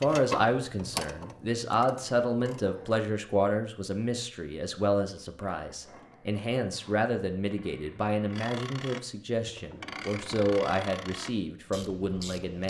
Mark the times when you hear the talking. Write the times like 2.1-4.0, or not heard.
0.0-12.6.